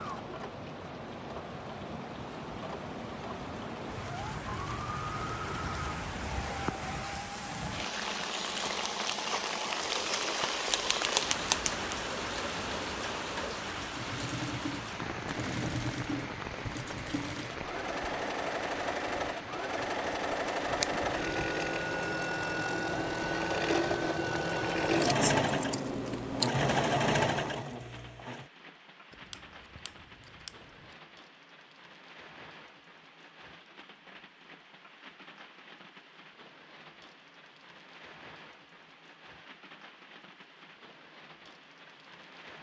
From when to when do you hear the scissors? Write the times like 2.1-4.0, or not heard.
10.7-11.8, 24.9-26.5, 29.1-30.9.